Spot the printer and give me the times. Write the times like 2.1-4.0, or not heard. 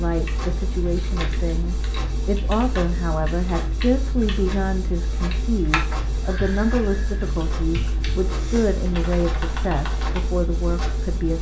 0.0-11.3.